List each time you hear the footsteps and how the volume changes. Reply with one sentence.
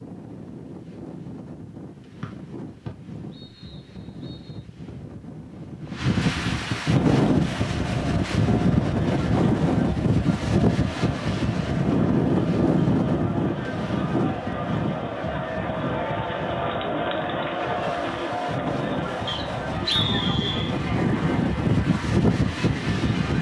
You can't hear the footsteps here.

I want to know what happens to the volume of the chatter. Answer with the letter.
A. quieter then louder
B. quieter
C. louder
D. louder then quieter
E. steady
D.